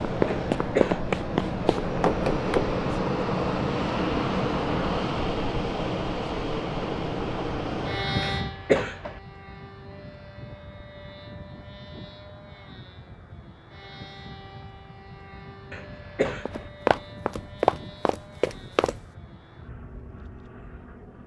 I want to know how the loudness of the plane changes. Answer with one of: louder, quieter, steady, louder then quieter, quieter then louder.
quieter.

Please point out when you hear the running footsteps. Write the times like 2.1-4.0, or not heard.
0.0-2.8, 16.4-18.9.